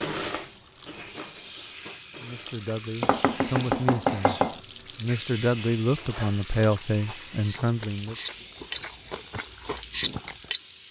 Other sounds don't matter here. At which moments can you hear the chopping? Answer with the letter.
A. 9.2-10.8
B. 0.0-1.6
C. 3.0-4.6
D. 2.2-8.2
C.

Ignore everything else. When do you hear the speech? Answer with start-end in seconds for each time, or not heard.
2.2-8.2.